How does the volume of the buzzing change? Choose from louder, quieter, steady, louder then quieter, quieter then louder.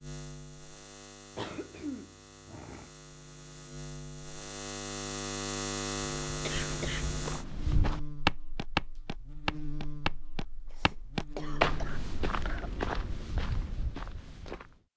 louder then quieter.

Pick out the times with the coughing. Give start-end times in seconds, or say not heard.
1.4-2.9, 6.2-7.2, 10.7-12.7.